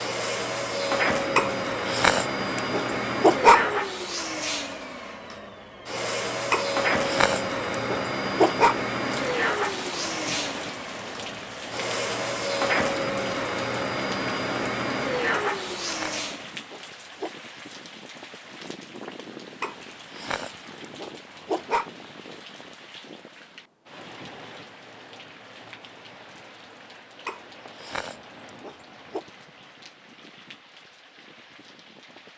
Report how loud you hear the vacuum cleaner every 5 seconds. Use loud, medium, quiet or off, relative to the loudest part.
loud, loud, loud, loud, off, off, off.